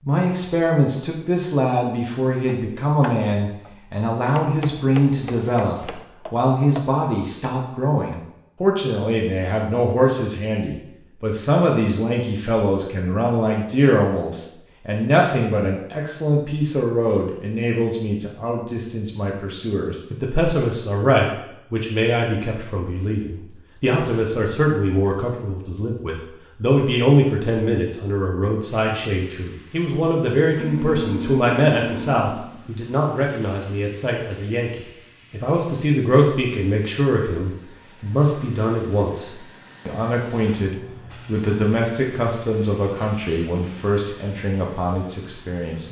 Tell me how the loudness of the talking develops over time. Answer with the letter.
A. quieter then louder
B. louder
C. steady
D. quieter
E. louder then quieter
C.